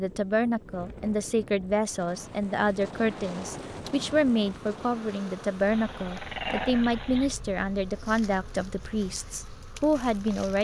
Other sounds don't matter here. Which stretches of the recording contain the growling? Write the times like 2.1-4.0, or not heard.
5.7-7.4.